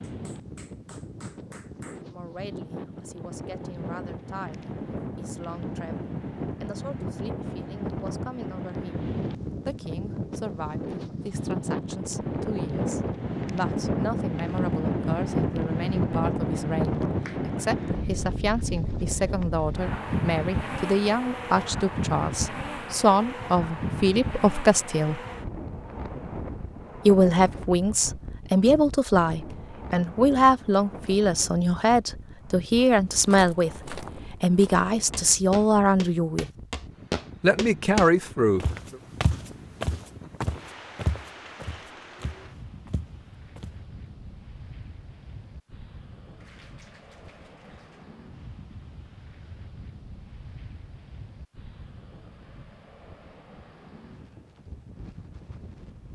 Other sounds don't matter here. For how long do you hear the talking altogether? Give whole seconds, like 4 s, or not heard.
33 s.